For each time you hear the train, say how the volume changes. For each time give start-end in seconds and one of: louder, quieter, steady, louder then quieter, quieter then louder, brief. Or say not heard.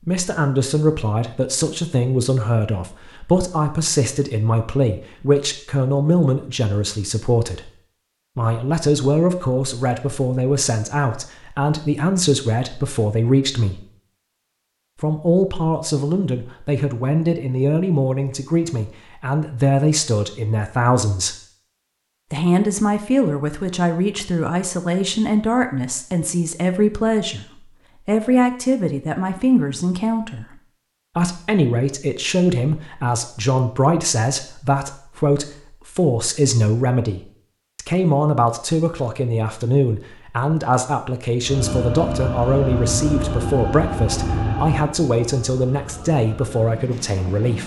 41.4-47.6 quieter.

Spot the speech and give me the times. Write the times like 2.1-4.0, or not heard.
0.1-7.7, 8.3-13.8, 15.0-21.4, 22.3-27.4, 28.1-30.4, 31.1-47.6.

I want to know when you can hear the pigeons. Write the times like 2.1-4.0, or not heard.
not heard.